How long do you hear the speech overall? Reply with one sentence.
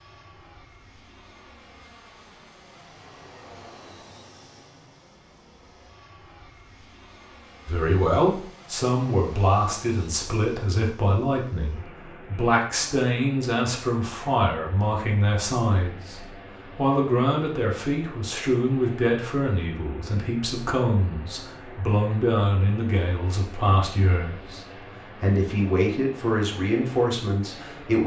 The speech can be heard for 20 seconds in total.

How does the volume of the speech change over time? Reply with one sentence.
The loudness of the speech stays about the same.